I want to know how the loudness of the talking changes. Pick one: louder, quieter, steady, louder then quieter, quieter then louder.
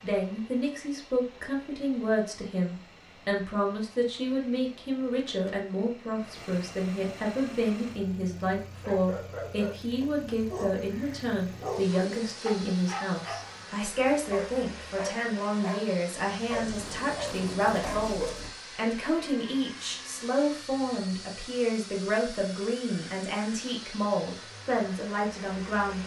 steady.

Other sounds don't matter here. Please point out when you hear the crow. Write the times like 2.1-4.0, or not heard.
not heard.